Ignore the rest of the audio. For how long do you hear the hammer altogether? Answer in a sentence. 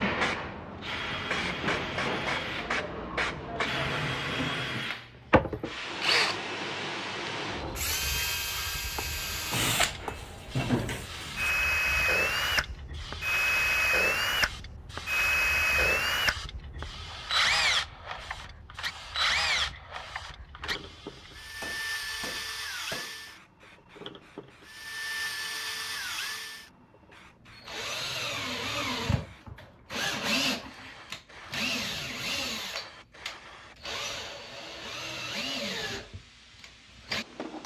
The hammer can be heard for 3 seconds in total.